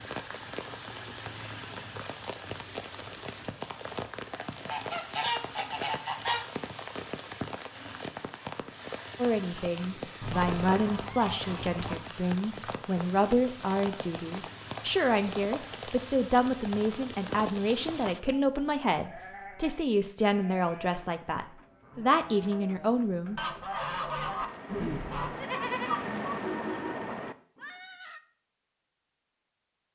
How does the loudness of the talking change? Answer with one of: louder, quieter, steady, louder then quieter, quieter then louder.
steady.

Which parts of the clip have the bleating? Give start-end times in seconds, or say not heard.
18.3-28.2.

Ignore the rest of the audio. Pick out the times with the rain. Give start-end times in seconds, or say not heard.
0.0-18.2.